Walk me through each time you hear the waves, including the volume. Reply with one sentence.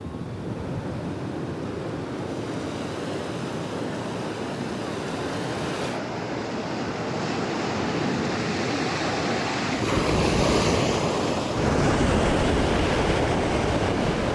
You can hear the waves from 0.0 to 14.2 s, getting louder.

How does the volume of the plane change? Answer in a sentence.
The volume of the plane stays about the same.